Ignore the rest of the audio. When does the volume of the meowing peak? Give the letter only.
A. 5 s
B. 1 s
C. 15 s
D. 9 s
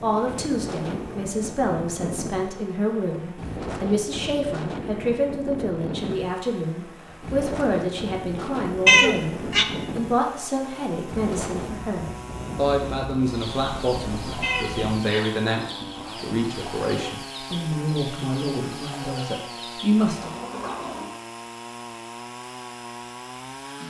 D.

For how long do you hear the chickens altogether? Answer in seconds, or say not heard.
8 s.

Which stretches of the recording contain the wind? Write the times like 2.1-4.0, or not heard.
0.0-15.0.